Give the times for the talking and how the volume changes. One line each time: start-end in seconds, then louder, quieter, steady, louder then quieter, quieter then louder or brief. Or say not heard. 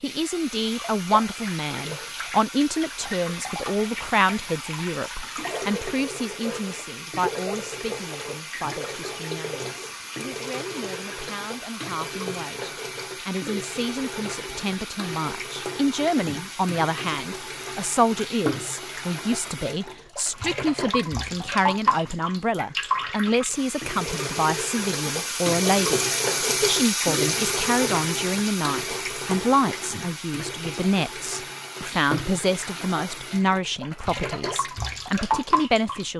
0.0-36.1 quieter then louder.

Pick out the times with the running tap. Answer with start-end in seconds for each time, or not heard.
0.0-36.1.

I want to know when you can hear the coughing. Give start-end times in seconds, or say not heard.
not heard.